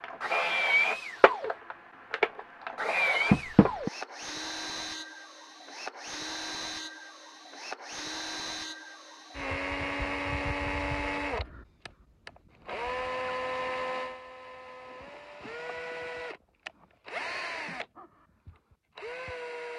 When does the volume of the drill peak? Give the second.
1 s.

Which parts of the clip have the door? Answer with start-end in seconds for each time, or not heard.
3.3-3.9.